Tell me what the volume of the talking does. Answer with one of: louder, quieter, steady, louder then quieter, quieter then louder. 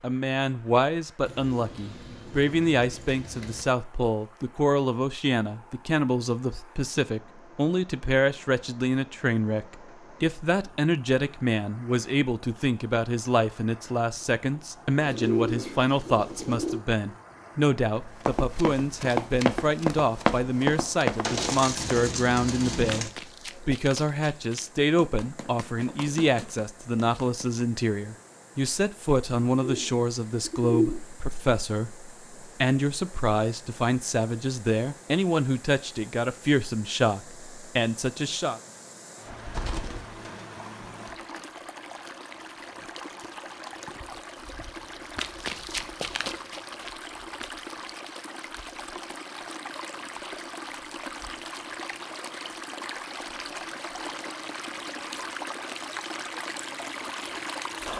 steady.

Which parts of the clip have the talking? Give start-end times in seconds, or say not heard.
0.0-38.6.